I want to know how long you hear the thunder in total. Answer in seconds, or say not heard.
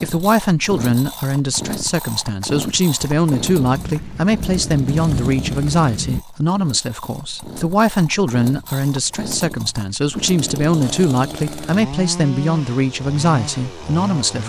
3 s.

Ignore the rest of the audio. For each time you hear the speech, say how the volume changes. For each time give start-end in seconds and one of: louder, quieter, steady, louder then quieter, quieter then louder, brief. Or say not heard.
0.0-14.4 steady.